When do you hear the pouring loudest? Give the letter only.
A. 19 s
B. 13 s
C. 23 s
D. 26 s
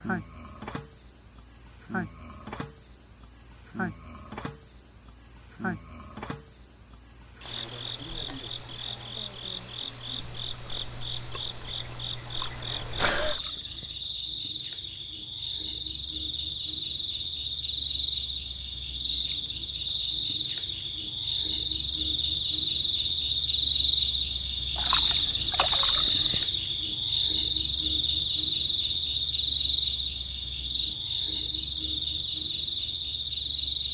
D.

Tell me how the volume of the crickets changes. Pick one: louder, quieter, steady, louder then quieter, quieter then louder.
louder.